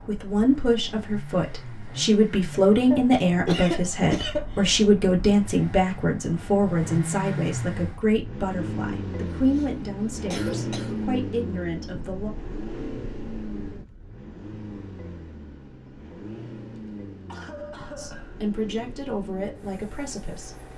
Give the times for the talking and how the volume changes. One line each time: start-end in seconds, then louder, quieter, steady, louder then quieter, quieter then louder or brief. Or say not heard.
0.1-12.3 quieter
17.9-20.6 brief.